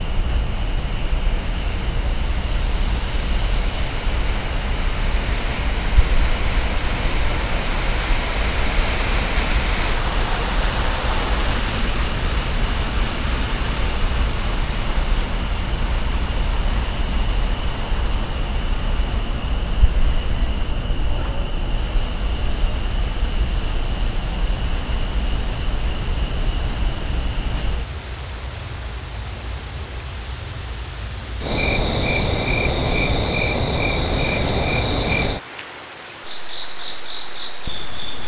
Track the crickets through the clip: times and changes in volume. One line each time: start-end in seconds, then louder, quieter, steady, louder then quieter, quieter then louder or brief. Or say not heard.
0.0-38.2 louder.